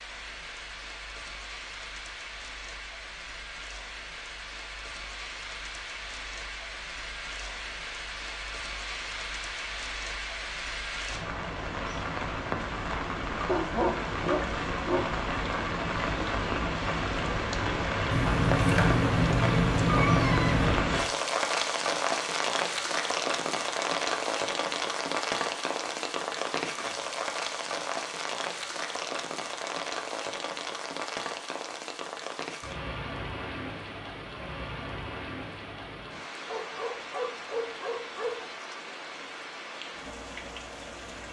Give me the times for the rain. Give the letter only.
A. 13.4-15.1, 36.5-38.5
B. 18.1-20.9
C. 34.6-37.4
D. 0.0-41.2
D.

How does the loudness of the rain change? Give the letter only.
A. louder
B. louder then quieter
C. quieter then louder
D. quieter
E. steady
B.